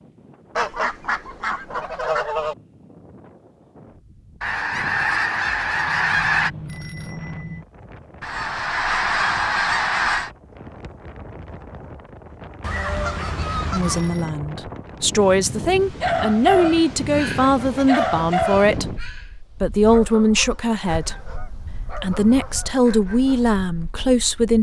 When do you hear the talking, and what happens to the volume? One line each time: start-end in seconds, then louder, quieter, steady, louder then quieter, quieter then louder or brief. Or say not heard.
13.7-24.5 steady.